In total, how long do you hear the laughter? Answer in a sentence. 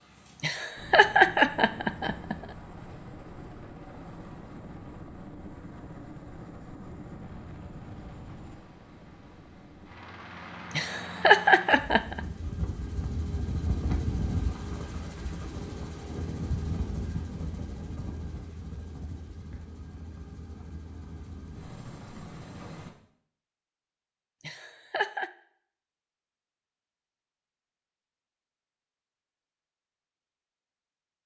The laughter can be heard for 4 seconds in total.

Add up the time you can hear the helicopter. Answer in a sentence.
The helicopter can be heard for 23 seconds in total.